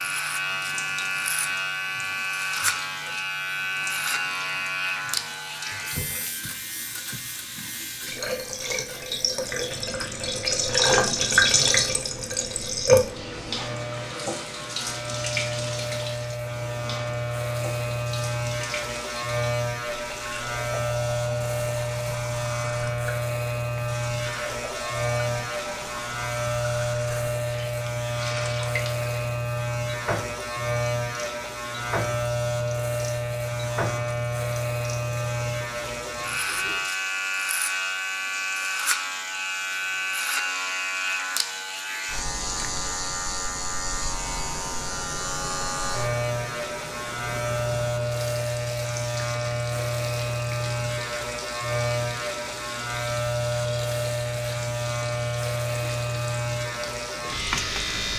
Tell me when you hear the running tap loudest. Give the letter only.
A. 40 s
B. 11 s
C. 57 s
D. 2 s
B.